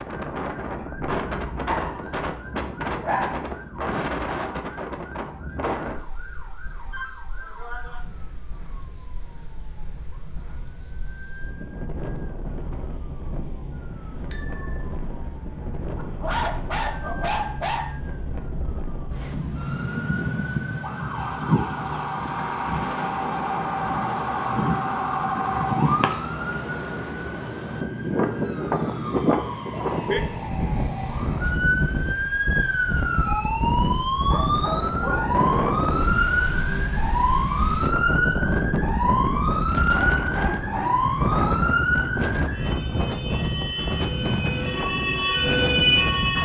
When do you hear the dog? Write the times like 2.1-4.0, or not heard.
1.6-3.5, 15.9-17.9, 39.9-41.6.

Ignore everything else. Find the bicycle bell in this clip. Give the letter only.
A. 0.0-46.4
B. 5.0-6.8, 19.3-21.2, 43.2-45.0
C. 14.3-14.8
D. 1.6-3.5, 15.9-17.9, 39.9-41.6
C.